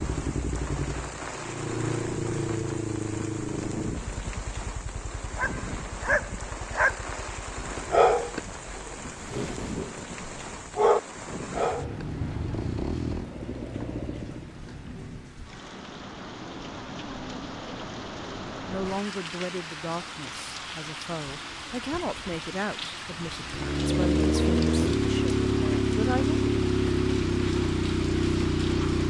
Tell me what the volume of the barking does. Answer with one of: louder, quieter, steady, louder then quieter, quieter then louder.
quieter then louder.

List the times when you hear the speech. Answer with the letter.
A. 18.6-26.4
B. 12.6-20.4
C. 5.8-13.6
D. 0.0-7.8
A.